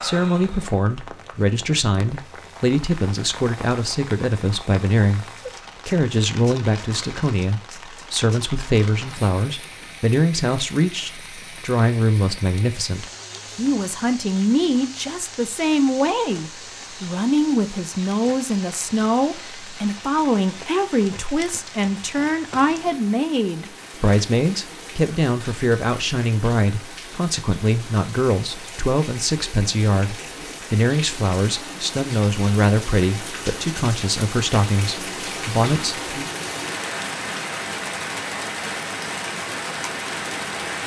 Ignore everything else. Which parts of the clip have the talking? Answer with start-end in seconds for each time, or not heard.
0.0-5.2, 5.8-36.2.